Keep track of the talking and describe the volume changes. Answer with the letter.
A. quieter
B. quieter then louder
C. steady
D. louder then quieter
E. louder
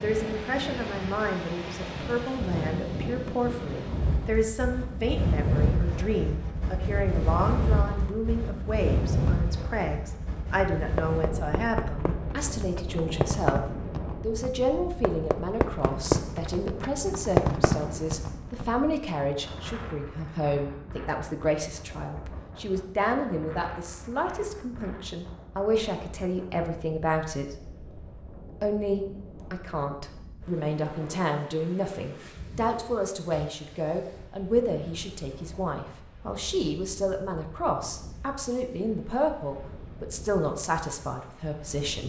C.